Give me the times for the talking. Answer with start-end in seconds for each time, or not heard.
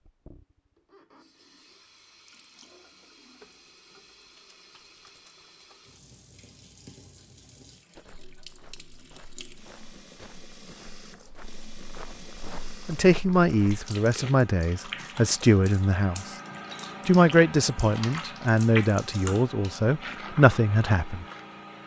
12.8-16.2, 17.1-21.2.